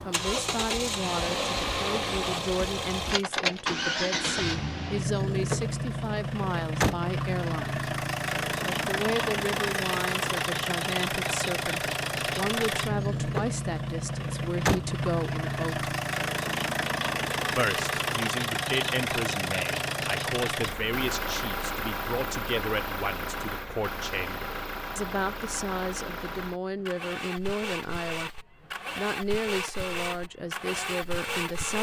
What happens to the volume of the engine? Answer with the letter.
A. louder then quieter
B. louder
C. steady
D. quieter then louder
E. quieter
E.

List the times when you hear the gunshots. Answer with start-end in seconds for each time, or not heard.
not heard.